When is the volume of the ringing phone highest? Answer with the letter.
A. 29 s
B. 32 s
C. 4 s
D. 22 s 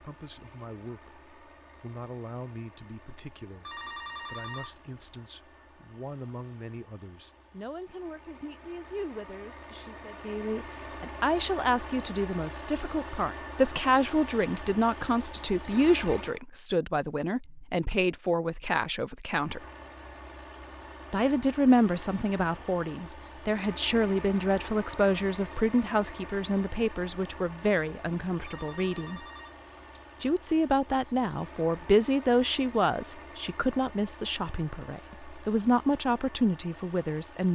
C.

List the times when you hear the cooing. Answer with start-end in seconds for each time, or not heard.
not heard.